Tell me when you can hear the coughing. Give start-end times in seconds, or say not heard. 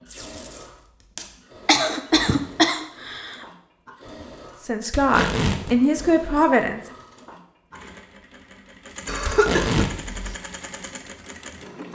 1.2-3.4, 9.1-10.3.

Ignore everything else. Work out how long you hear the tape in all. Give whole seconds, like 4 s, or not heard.
3 s.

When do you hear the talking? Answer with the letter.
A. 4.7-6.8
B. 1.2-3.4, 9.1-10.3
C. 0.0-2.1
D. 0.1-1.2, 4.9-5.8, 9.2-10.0
A.